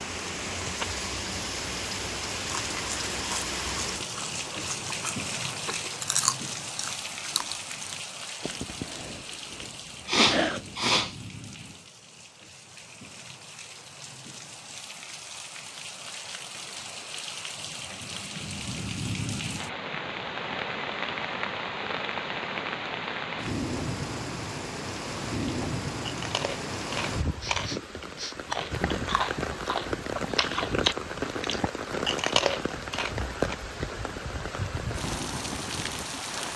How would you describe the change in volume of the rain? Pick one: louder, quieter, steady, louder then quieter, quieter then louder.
quieter then louder.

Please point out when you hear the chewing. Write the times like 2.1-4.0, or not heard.
2.4-10.8, 25.4-33.5.